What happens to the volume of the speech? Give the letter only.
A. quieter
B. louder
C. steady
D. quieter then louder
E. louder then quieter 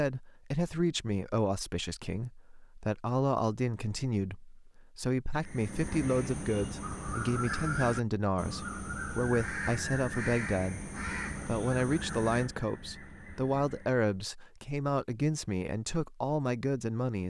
C.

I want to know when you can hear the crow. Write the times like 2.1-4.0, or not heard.
5.3-14.1.